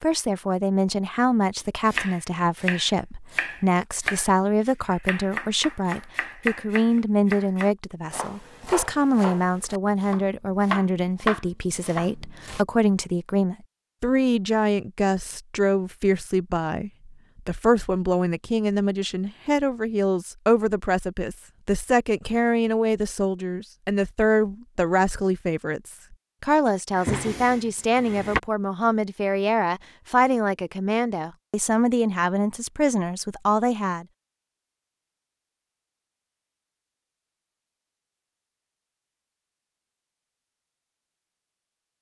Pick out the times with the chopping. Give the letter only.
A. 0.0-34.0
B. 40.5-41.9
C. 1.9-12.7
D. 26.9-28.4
C.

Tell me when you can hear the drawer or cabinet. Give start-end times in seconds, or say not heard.
26.9-28.4.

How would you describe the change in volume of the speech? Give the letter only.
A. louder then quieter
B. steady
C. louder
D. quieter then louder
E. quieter
B.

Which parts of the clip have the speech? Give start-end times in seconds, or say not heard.
0.0-34.0.